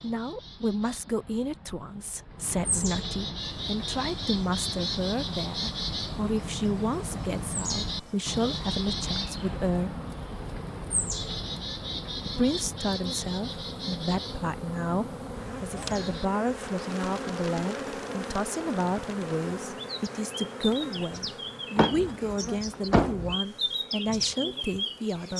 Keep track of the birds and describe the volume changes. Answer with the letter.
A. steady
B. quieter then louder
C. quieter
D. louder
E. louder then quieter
B.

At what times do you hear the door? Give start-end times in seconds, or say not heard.
21.8-23.4.